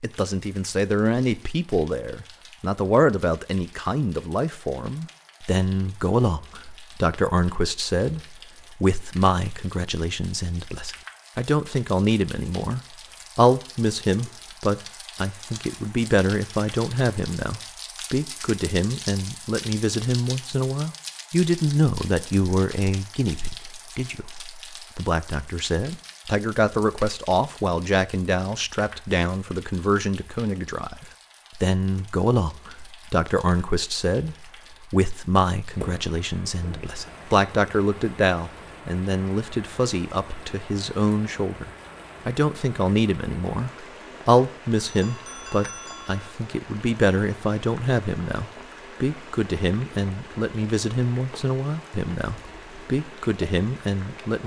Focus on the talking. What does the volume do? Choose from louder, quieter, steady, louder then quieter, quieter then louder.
steady.